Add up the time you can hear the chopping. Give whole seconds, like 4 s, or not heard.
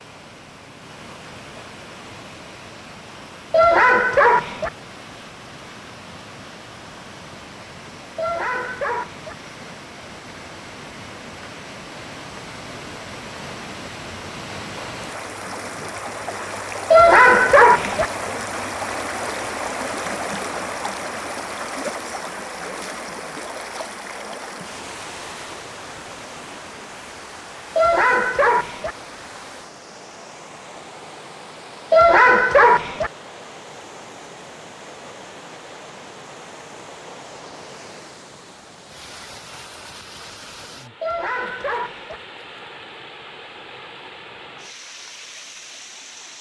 not heard.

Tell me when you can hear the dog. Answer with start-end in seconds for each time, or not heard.
3.5-4.7, 8.2-9.3, 16.9-18.1, 27.8-28.9, 31.9-33.1, 41.0-42.2.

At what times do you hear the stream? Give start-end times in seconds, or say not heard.
0.0-46.3.